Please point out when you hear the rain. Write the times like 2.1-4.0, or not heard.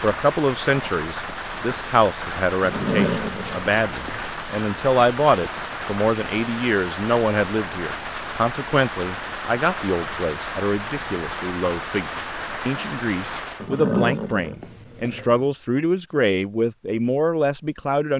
0.0-13.7.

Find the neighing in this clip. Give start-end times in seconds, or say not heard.
2.6-4.2, 13.6-15.4.